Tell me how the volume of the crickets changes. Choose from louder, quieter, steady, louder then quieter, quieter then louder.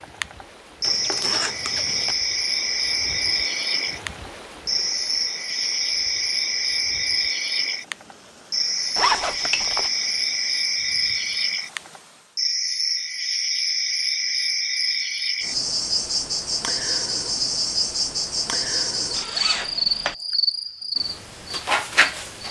steady.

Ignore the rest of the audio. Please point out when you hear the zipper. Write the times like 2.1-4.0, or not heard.
0.8-2.1, 8.9-9.9, 19.1-20.1.